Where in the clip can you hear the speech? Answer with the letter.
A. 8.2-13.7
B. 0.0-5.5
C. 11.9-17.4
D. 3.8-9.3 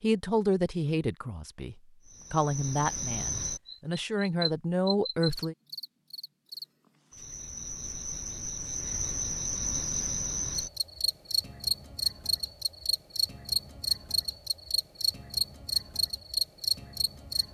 B.